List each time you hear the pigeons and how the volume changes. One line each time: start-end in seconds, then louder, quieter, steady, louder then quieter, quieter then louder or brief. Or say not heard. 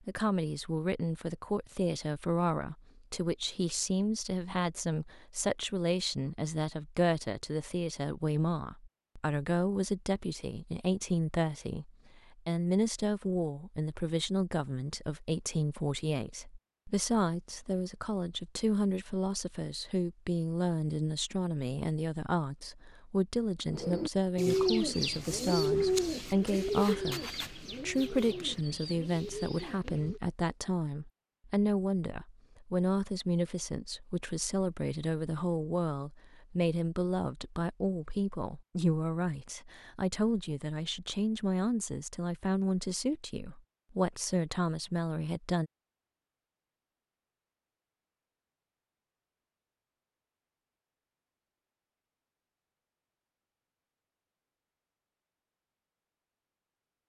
23.7-30.2 quieter.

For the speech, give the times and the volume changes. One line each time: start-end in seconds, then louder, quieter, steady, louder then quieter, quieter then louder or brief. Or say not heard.
0.1-45.7 steady.